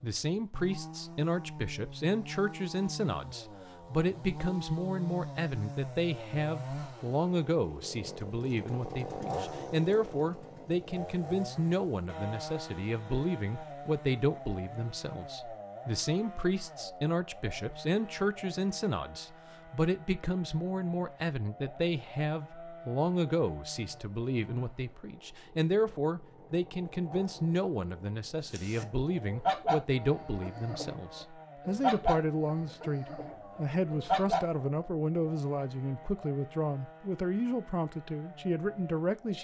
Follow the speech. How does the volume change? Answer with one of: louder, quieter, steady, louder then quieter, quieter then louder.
steady.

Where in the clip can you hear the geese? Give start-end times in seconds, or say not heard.
28.5-34.5.